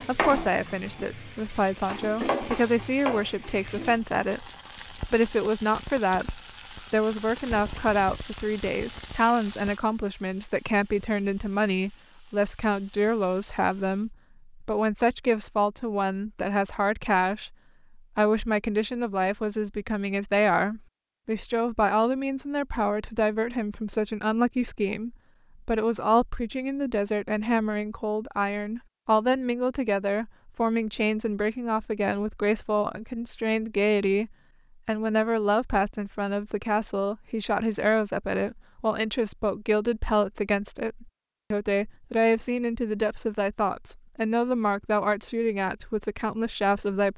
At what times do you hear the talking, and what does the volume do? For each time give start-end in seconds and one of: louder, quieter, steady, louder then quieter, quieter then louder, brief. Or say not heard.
0.1-47.1 steady.